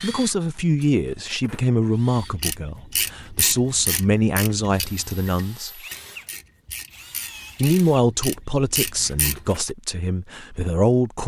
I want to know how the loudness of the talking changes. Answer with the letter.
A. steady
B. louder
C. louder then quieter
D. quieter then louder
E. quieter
A.